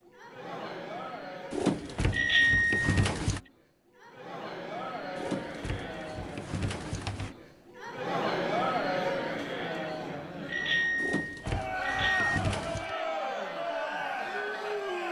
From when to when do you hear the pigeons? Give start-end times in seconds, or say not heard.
1.5-3.4, 5.2-7.3, 10.9-12.9.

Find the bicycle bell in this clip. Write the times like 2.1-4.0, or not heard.
2.1-2.9, 10.4-12.4.